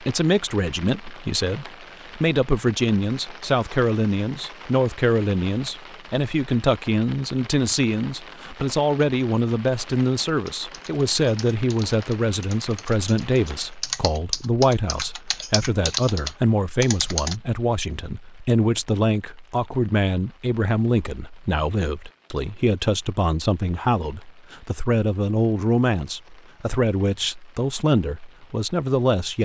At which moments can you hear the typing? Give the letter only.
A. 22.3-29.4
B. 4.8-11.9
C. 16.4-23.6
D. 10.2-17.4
D.